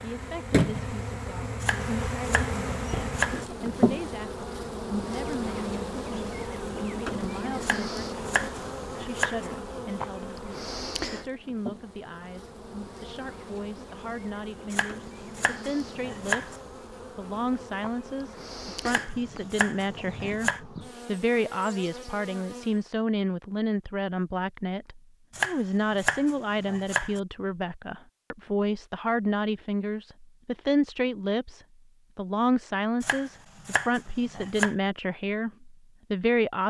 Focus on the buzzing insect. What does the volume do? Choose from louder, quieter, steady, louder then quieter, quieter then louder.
quieter.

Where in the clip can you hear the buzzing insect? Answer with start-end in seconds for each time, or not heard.
0.0-22.9.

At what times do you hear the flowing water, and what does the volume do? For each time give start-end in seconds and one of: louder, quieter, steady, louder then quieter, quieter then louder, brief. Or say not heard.
not heard.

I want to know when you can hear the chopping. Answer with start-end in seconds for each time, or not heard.
1.6-3.5, 7.6-9.5, 14.7-16.6, 18.9-20.6, 25.3-27.2, 33.0-34.8.